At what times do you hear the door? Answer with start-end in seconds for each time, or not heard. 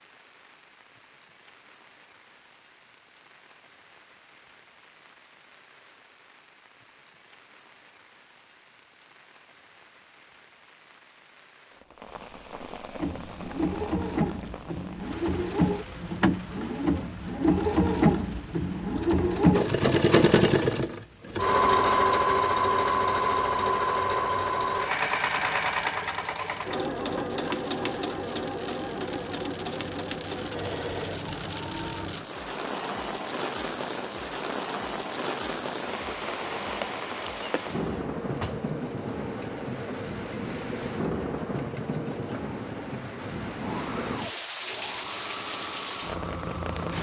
37.8-38.7.